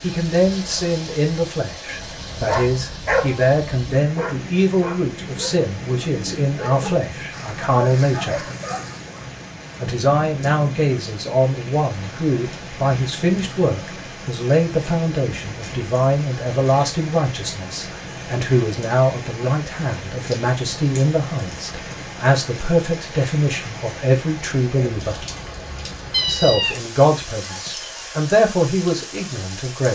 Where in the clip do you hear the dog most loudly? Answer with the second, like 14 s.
3 s.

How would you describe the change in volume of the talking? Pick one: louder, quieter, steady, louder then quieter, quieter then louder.
steady.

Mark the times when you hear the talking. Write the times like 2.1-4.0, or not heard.
0.0-8.4, 9.8-25.2, 26.2-29.9.